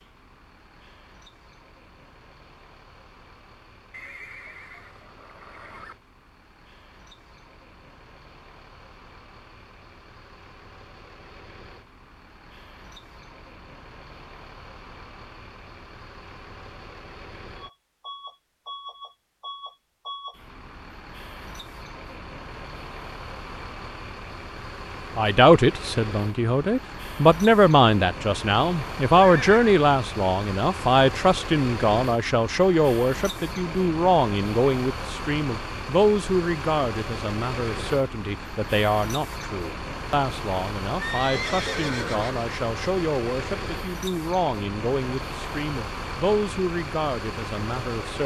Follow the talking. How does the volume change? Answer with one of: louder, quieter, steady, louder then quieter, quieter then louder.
quieter.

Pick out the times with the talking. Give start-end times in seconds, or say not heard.
25.1-48.2.